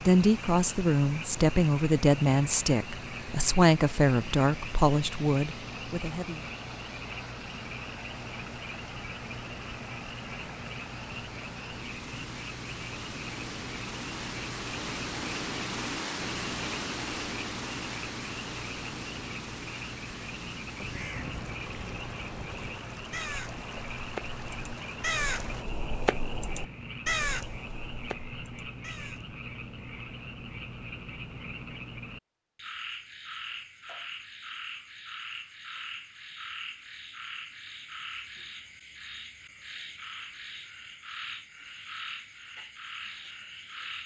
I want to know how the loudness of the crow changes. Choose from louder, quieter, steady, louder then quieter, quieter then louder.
louder then quieter.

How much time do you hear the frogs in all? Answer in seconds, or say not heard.
44 s.